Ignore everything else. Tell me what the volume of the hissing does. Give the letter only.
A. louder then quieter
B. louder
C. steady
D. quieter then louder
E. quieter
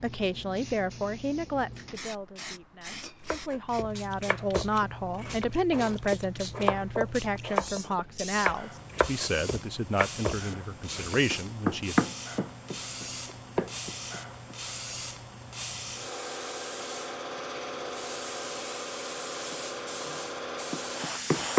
B.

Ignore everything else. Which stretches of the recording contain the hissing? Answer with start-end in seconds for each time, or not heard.
0.0-21.5.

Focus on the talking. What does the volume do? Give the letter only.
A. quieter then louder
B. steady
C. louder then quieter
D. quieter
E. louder
B.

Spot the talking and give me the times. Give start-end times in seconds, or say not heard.
0.0-12.1.